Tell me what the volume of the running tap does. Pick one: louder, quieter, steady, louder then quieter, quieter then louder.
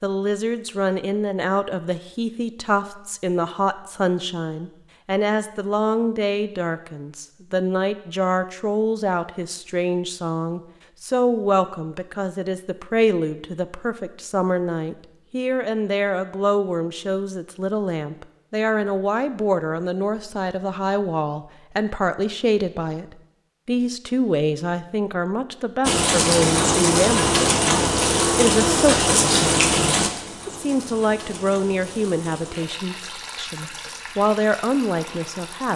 quieter.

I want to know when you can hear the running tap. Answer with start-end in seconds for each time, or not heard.
25.8-35.7.